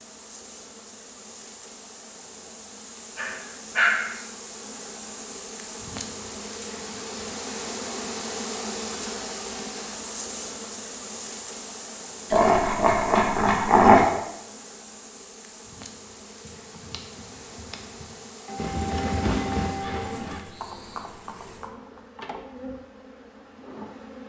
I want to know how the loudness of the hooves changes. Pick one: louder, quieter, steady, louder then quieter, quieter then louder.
louder then quieter.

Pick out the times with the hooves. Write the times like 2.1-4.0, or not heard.
16.4-22.0.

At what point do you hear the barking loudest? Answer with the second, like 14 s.
14 s.